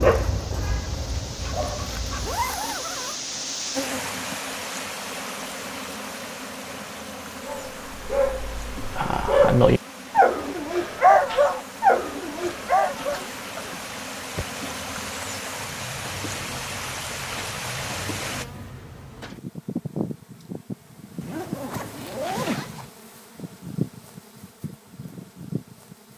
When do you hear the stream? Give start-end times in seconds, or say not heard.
0.0-18.4.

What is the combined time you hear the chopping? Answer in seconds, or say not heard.
not heard.